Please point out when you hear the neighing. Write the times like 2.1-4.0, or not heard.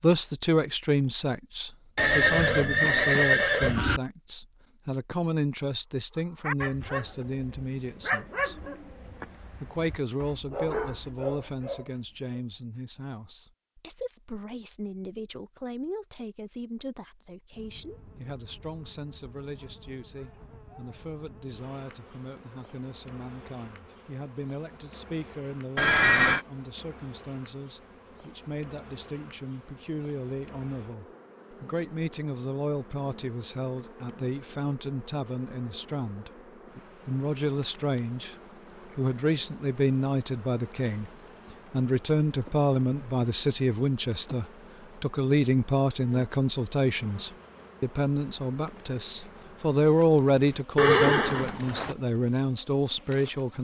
1.9-4.0, 25.8-26.4, 50.8-52.0.